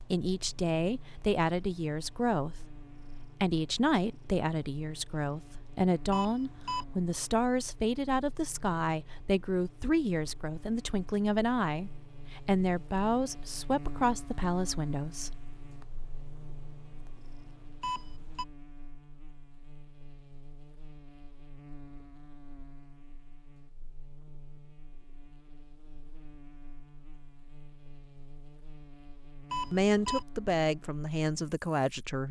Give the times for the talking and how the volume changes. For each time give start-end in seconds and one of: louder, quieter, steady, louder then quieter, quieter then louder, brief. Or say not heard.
0.0-15.4 steady
29.7-32.2 brief.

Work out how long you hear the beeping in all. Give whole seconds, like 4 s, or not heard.
2 s.